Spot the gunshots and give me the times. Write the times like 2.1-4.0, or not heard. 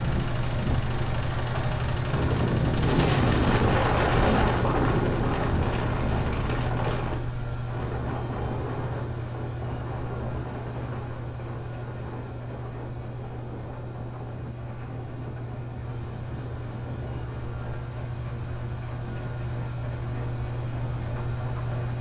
2.8-4.6.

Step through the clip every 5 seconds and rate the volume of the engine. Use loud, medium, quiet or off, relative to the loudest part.
loud, loud, medium, medium, loud.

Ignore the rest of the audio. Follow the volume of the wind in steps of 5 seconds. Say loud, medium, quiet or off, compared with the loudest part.
loud, medium, quiet, quiet, quiet.